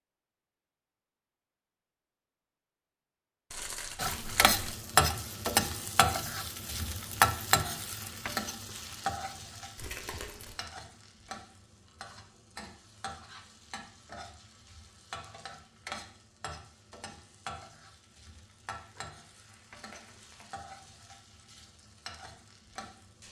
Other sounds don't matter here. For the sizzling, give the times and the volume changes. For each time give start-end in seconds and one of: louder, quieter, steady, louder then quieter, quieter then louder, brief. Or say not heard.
4.0-23.2 quieter.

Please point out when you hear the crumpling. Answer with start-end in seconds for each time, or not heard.
3.5-4.8, 9.8-10.7, 18.8-20.5.